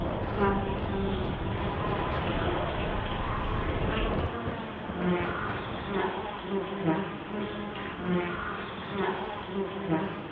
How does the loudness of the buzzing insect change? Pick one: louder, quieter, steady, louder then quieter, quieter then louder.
steady.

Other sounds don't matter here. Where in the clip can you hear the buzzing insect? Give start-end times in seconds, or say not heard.
0.0-10.2.